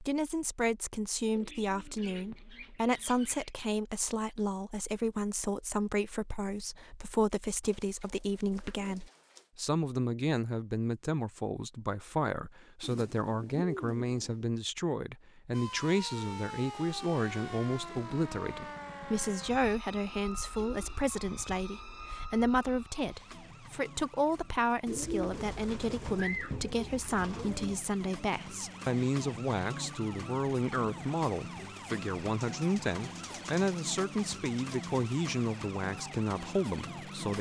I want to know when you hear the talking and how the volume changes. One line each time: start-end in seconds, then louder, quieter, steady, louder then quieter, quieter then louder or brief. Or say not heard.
0.0-37.3 steady.